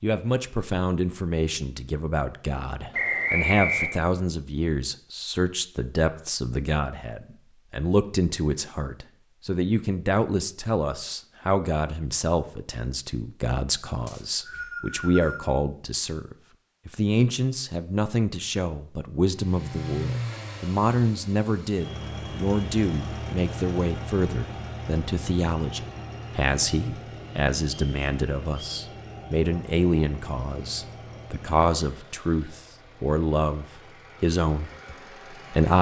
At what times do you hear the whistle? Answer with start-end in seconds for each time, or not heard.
2.9-4.0, 14.1-15.5, 27.7-28.9.